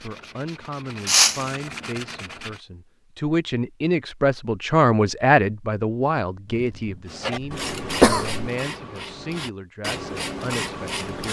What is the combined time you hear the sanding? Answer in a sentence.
The sanding can be heard for 7 seconds in total.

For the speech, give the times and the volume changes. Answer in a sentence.
The speech can be heard from 0.0 to 11.2 s, getting louder then quieter.